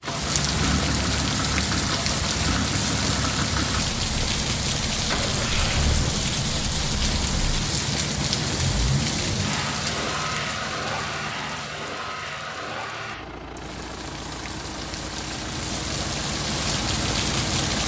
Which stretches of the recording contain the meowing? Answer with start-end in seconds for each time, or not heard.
not heard.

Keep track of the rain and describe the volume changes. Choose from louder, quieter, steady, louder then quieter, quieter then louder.
quieter then louder.